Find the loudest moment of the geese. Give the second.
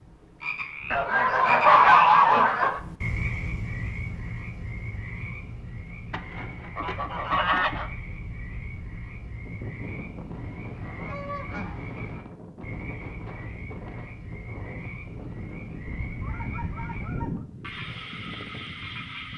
2 s.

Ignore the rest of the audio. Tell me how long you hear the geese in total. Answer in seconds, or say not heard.
7 s.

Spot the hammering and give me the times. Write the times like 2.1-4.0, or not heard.
not heard.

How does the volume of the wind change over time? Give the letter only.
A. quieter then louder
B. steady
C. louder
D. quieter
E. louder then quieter
B.